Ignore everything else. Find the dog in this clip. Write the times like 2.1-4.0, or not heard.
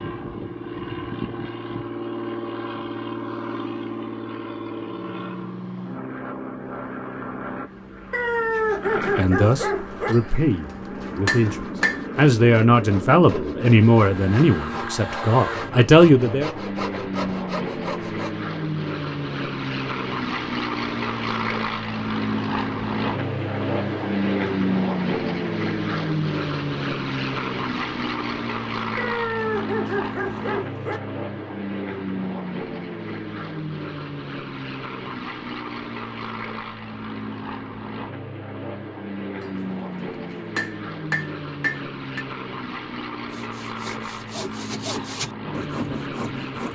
8.1-10.2, 28.9-31.0.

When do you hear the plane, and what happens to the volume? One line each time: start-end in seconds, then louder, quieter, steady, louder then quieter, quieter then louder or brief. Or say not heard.
0.0-46.6 louder then quieter.